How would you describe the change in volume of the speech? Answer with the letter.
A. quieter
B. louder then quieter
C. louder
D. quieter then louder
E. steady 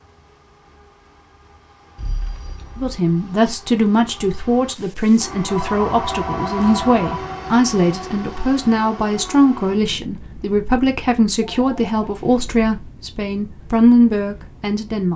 E.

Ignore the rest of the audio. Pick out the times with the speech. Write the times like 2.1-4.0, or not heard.
2.8-15.1.